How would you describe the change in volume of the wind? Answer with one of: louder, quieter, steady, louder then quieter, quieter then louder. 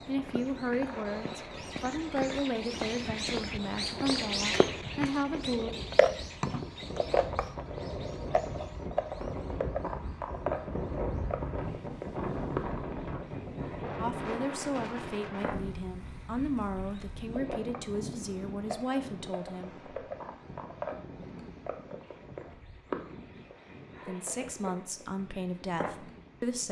louder then quieter.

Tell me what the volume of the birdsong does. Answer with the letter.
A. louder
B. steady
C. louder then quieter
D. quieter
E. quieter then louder
D.